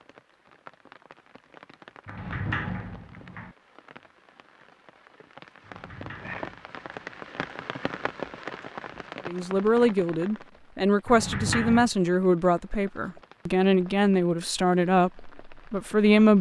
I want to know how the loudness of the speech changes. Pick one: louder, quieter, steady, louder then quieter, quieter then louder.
steady.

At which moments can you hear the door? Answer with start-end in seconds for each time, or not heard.
2.0-3.5, 5.6-7.1, 11.1-11.9.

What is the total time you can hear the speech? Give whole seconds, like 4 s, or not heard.
7 s.